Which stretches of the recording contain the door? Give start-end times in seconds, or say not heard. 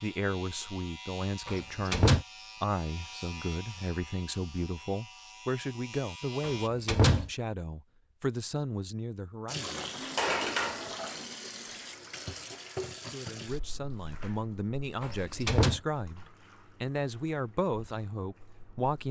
1.4-2.2, 6.4-7.3, 15.0-15.8.